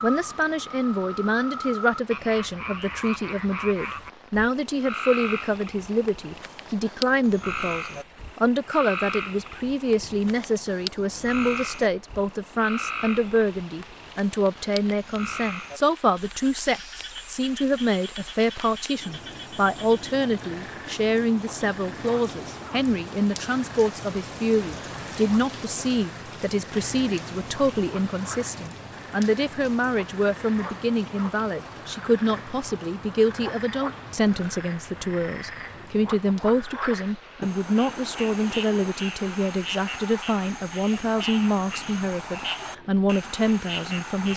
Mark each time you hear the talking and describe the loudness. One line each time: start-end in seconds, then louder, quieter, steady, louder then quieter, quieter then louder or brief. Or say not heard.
0.0-44.3 steady.